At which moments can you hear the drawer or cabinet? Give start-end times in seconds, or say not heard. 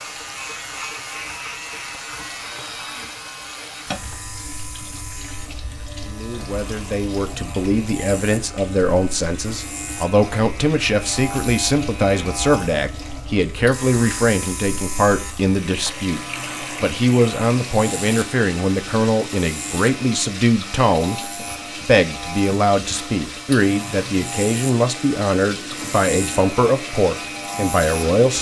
not heard.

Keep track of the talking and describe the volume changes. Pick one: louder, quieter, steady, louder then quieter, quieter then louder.
steady.